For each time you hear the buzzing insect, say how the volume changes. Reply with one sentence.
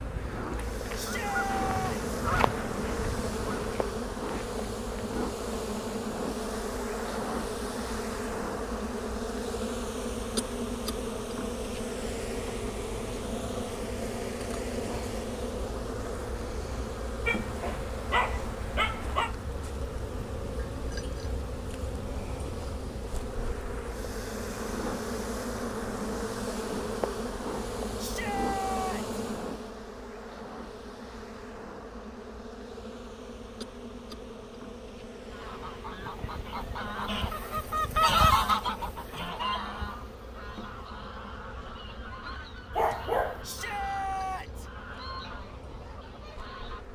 You can hear the buzzing insect from 0.0 to 46.9 s, getting quieter.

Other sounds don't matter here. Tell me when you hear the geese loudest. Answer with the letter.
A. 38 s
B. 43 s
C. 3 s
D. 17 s
A.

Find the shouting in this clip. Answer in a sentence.
You can hear the shouting from 0.9 to 2.1 s, from 27.9 to 29.1 s and from 43.4 to 44.6 s.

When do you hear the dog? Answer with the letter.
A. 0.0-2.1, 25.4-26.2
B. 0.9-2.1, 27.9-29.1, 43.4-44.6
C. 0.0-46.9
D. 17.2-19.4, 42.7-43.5
D.